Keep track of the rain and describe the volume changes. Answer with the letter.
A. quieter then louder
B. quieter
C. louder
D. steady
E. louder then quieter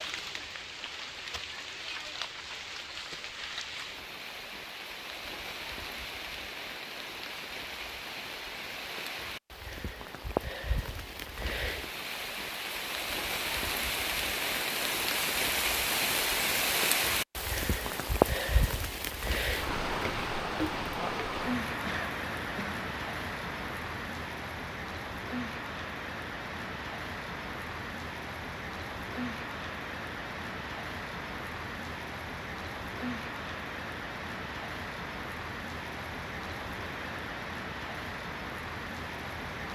E.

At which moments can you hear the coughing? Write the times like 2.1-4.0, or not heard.
21.9-22.8.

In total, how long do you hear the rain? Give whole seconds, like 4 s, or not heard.
40 s.